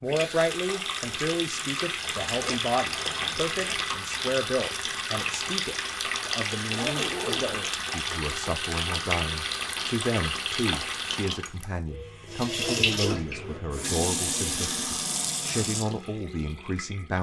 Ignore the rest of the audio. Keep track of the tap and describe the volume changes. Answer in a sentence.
The volume of the tap stays about the same.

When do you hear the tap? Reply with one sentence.
The tap can be heard from 0.0 to 17.1 s.